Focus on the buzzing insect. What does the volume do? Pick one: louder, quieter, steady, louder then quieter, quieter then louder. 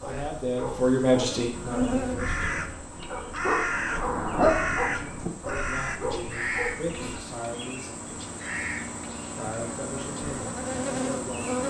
quieter then louder.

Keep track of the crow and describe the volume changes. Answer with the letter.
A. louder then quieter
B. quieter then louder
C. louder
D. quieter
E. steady
D.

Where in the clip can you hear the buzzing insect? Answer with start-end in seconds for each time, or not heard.
0.0-11.6.